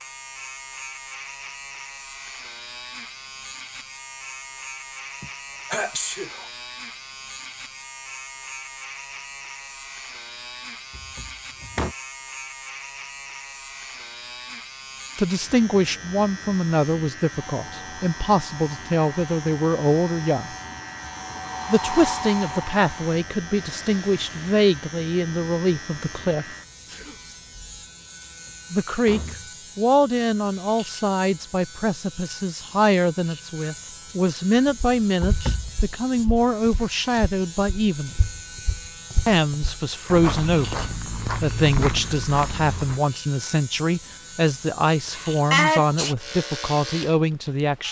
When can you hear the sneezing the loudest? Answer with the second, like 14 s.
46 s.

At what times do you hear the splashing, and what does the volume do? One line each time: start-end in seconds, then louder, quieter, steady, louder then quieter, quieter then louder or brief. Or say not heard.
not heard.